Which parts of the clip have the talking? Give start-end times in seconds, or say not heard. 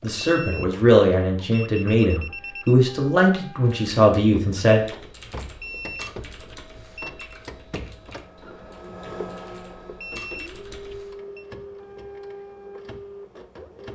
0.0-4.8.